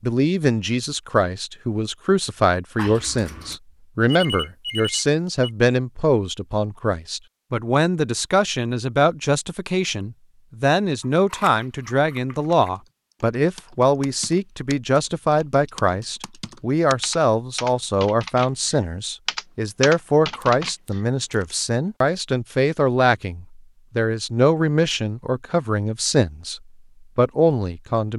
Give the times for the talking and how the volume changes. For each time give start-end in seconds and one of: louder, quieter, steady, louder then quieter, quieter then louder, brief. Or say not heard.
0.0-28.1 steady.